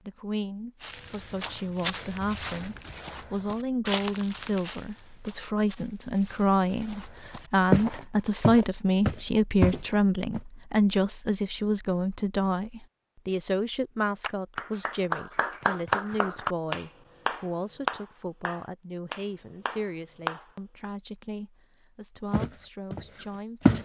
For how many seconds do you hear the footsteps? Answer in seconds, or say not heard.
11 s.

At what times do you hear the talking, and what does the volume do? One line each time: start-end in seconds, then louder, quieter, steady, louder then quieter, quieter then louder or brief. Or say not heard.
0.1-23.7 louder then quieter.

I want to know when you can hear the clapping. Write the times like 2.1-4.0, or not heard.
14.2-20.9.